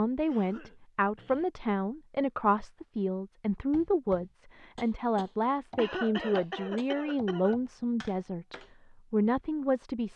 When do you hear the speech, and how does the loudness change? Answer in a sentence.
You can hear the speech from 0.0 to 10.1 s, at a steady volume.